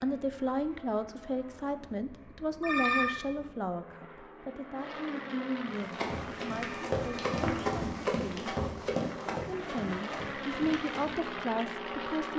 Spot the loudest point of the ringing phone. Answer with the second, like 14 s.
3 s.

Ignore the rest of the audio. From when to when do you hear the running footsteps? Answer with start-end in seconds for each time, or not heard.
5.7-11.2.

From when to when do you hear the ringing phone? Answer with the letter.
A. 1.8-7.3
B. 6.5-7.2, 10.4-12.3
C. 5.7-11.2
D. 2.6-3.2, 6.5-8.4
D.